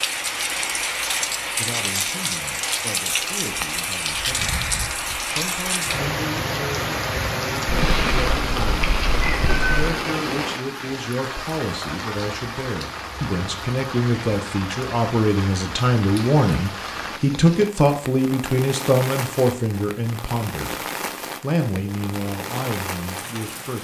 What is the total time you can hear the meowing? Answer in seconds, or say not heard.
2 s.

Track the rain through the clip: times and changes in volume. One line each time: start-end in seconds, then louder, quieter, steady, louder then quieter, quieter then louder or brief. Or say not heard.
0.0-23.7 quieter.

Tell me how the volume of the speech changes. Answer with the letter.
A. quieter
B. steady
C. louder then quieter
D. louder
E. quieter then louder
C.